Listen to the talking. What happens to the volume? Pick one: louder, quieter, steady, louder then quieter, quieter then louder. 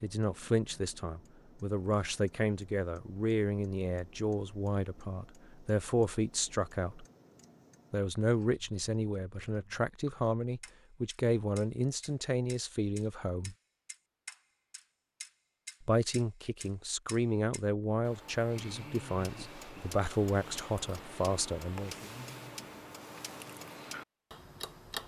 steady.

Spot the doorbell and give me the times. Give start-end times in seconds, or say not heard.
not heard.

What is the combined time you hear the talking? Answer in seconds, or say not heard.
19 s.